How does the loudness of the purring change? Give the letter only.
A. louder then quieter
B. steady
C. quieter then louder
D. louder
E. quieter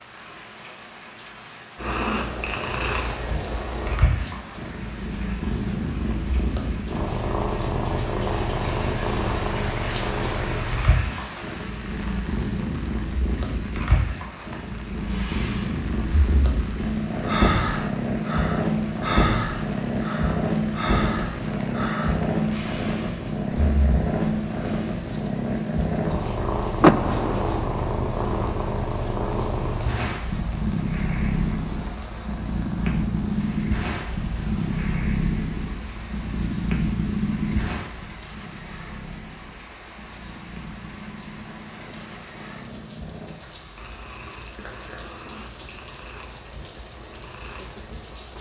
E.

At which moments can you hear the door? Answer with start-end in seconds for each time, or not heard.
26.8-27.6.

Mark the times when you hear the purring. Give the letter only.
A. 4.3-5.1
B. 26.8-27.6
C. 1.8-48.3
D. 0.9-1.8
C.